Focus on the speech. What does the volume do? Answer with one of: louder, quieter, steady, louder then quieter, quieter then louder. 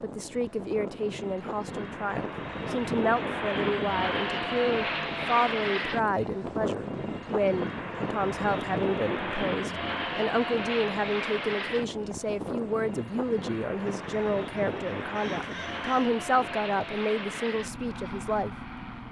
steady.